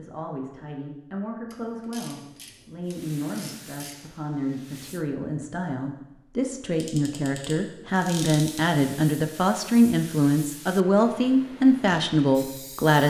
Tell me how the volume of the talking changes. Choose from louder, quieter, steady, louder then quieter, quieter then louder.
louder.